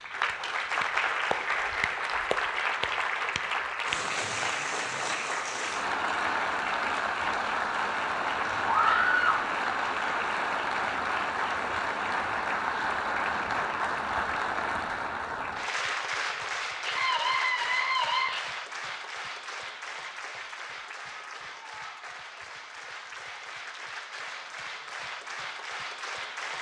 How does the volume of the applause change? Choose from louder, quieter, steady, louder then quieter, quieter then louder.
quieter.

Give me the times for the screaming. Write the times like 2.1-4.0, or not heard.
8.7-9.4, 16.8-18.4.